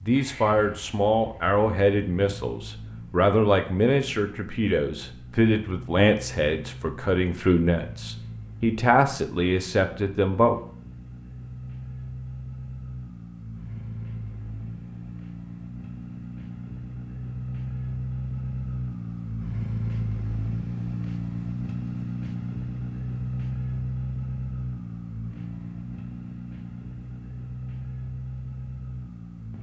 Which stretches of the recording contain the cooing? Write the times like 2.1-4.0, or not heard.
not heard.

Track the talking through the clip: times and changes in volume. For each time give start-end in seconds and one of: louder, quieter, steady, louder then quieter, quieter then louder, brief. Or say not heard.
0.1-10.6 steady.